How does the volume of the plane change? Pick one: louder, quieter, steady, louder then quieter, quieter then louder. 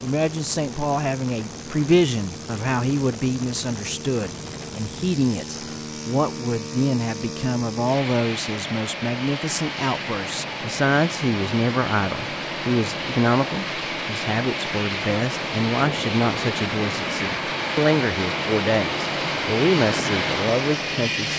louder.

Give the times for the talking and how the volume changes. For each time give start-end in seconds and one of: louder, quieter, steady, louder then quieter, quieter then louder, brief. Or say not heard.
0.0-21.3 steady.